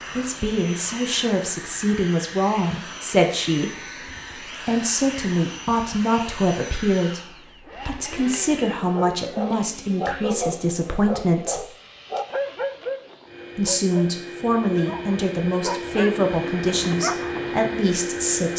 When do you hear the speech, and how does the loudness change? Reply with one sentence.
You can hear the speech from 0.1 to 11.7 s, at a steady volume; and from 13.6 to 18.5 s, at a steady volume.